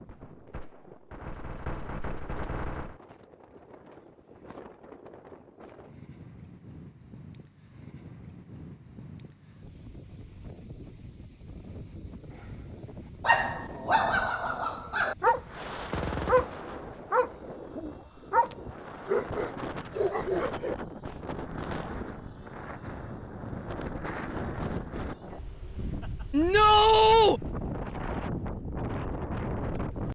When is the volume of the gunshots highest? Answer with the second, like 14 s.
16 s.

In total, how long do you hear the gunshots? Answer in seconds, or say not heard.
4 s.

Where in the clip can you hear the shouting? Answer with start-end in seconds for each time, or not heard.
26.3-27.4.